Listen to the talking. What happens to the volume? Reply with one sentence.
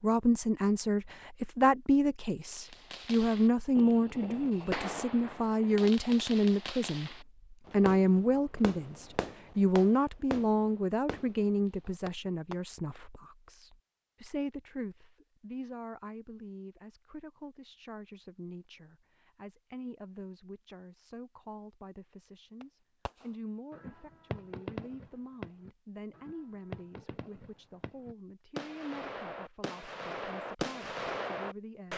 The volume of the talking goes down.